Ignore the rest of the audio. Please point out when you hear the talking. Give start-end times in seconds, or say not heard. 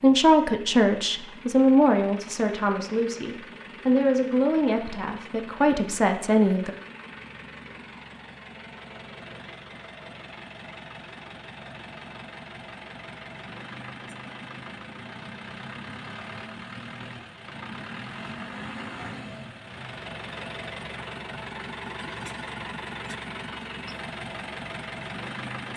0.0-6.7.